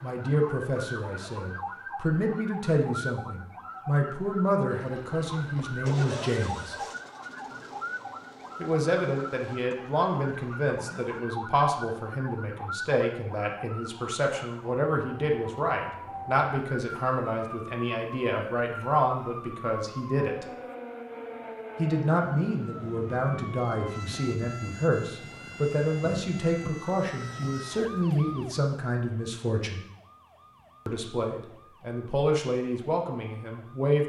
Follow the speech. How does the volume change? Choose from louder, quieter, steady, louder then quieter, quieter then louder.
steady.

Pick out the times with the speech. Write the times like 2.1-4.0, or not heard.
0.0-6.8, 8.6-20.4, 21.8-29.8, 30.9-34.0.